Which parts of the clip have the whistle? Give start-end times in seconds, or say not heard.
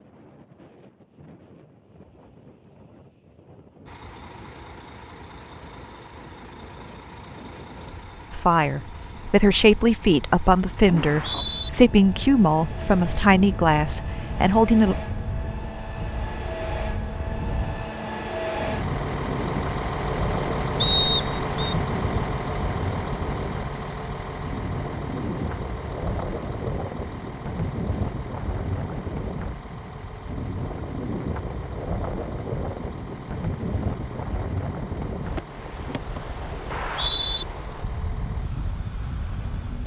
10.9-11.7, 20.8-21.8, 36.7-37.5.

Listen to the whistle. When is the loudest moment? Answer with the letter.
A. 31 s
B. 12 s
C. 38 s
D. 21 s
D.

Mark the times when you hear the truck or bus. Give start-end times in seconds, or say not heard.
3.9-39.8.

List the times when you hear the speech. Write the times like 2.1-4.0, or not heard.
8.3-14.9.